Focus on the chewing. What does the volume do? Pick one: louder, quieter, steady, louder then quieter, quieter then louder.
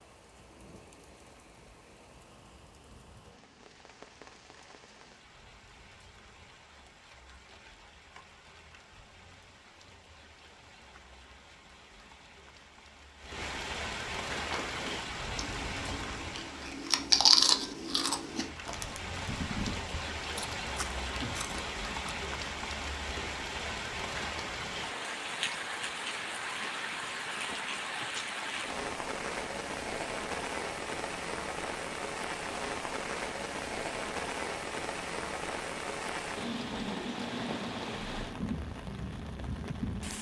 louder then quieter.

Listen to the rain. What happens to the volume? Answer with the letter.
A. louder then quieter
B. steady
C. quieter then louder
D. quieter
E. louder
E.